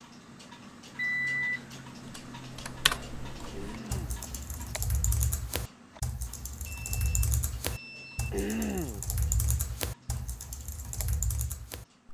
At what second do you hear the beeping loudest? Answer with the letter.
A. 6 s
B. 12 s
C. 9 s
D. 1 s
D.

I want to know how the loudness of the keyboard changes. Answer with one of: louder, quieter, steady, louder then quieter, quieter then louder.
steady.